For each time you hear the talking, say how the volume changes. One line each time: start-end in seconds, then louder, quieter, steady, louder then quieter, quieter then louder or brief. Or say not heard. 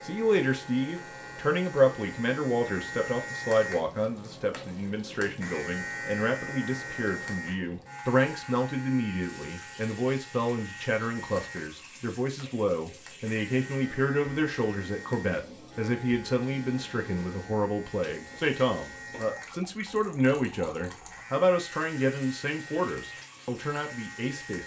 0.0-24.6 steady.